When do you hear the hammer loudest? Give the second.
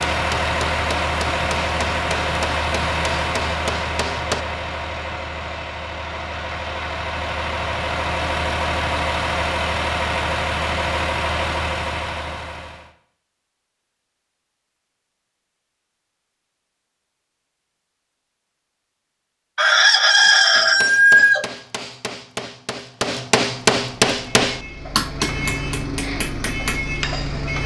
24 s.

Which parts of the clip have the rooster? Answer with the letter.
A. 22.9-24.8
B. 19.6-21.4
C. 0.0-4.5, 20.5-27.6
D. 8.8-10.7
B.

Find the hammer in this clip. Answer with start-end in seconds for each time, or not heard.
0.0-4.5, 20.5-27.6.